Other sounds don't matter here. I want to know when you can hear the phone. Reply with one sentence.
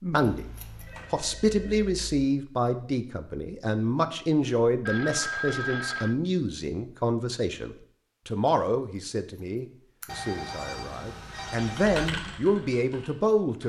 The phone can be heard from 0.3 to 2.0 s, from 4.8 to 6.2 s and from 10.1 to 12.1 s.